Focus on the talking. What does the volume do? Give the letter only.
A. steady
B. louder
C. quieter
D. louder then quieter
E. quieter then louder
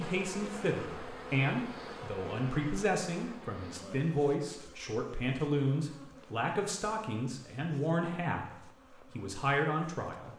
A.